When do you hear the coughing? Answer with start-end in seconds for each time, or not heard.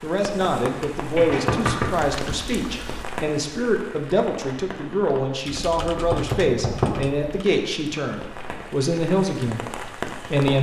not heard.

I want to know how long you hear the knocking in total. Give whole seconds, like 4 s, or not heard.
2 s.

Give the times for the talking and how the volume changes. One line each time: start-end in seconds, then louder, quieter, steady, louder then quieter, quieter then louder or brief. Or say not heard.
0.0-10.5 steady.